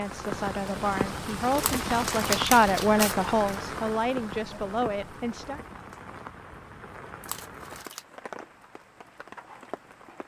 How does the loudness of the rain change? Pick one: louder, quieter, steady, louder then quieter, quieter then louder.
quieter.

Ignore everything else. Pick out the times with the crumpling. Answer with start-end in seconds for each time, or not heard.
1.6-3.5, 7.2-8.1.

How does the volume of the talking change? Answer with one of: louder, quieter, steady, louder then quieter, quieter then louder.
louder then quieter.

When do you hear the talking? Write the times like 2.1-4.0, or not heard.
0.0-5.6.